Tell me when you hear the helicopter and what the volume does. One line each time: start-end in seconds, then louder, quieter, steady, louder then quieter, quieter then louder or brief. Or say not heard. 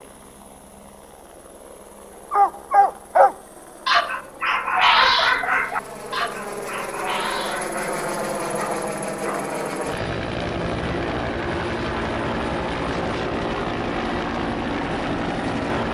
0.0-15.9 louder.